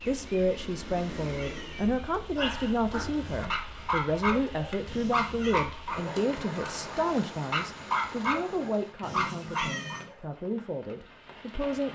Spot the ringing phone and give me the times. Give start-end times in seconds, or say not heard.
not heard.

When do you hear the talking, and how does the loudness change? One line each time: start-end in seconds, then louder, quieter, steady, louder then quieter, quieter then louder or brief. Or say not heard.
0.1-11.9 quieter.